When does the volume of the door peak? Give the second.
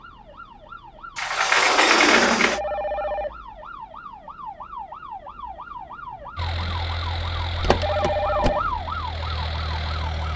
2 s.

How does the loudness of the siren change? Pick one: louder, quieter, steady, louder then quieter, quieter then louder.
louder.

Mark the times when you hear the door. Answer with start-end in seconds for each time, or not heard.
1.1-2.6, 7.5-8.6.